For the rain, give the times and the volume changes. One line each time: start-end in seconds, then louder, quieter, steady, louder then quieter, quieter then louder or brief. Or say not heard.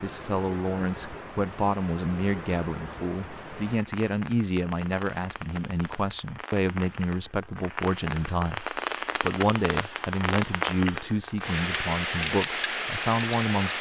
0.0-13.7 louder.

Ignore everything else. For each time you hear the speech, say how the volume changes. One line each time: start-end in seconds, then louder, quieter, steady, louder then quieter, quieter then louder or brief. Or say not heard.
0.0-13.7 steady.